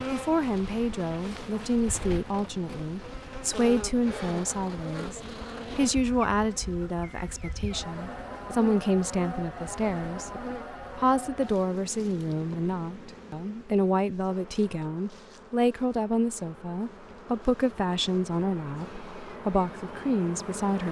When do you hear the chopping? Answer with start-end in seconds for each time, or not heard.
not heard.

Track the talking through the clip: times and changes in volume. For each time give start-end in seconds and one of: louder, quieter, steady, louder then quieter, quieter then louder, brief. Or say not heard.
0.1-20.8 steady.